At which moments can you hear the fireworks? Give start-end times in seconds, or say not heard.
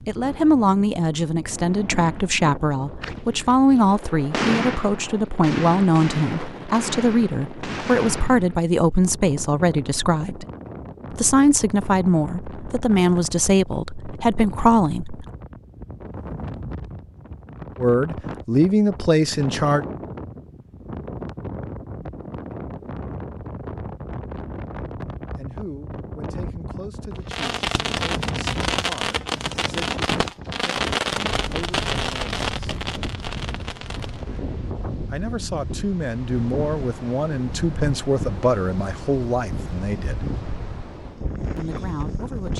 1.5-8.7, 27.1-34.4.